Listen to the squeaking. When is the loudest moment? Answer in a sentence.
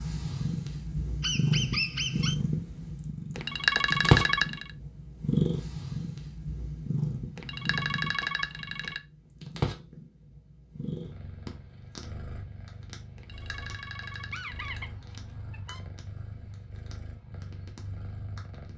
The volume of the squeaking peaks at 2 seconds.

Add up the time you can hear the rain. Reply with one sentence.
The rain can't be heard in this clip.